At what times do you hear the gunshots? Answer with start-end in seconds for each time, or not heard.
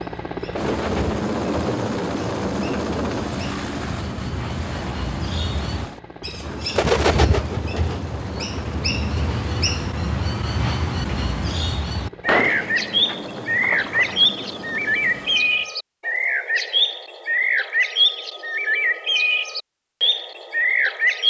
12.2-14.2.